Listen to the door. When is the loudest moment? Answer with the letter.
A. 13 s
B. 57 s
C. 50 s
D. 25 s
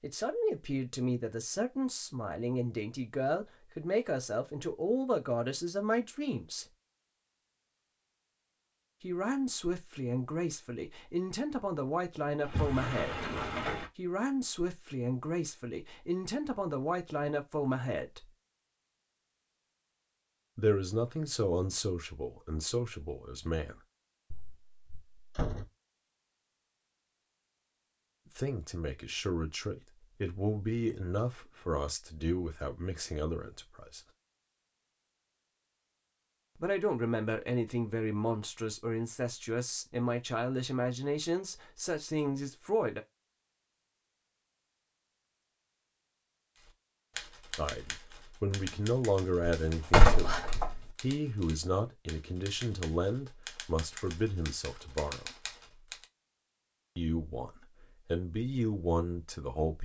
C.